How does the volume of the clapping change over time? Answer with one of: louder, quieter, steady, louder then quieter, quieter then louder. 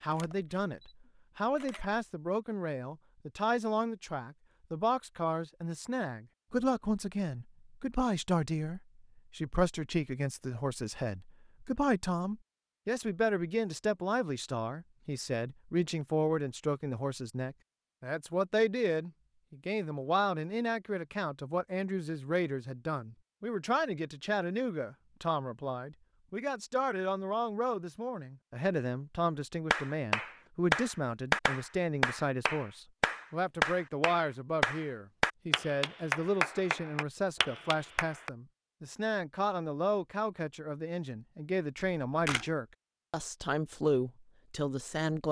quieter.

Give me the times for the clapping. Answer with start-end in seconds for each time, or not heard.
29.7-38.3.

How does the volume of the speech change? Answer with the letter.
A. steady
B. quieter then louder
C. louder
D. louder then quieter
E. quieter
A.